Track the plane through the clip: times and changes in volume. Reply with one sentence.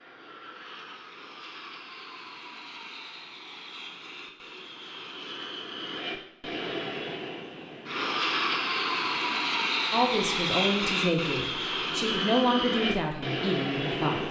You can hear the plane from 0.0 to 14.2 s, getting louder.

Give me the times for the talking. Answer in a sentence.
The talking can be heard from 9.9 to 14.2 s.